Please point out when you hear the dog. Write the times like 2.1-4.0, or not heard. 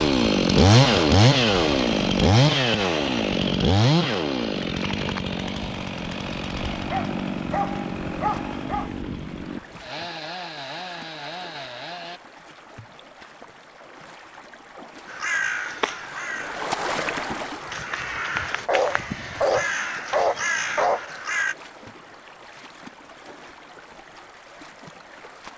6.8-8.9, 18.4-21.2.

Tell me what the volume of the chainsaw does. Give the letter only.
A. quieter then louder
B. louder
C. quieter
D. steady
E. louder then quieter
C.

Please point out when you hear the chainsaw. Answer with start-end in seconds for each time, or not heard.
0.0-12.2.